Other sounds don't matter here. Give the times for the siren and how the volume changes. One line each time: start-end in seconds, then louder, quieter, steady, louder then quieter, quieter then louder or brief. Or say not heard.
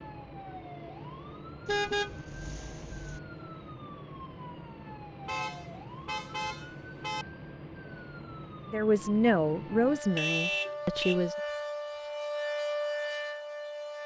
0.0-14.0 louder.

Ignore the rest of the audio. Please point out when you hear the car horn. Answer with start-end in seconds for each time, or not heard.
1.6-3.2, 5.2-7.2, 10.2-11.2.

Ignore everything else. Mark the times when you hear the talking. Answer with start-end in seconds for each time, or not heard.
8.7-11.3.